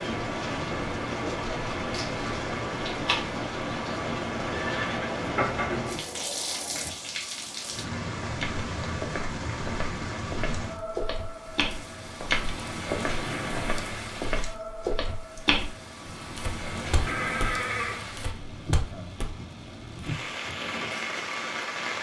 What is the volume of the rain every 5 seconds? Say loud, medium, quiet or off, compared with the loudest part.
loud, loud, medium, medium, loud.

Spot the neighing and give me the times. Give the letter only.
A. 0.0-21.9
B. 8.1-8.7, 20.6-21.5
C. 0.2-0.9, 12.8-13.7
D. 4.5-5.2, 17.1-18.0
D.